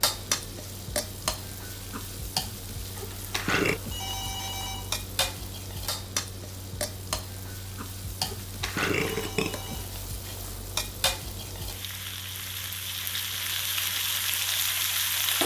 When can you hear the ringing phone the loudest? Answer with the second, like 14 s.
4 s.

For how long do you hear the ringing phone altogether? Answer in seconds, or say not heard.
2 s.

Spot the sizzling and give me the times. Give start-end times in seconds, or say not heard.
0.0-15.4.